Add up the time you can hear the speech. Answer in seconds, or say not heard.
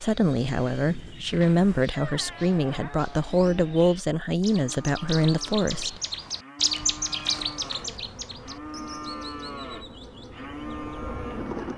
6 s.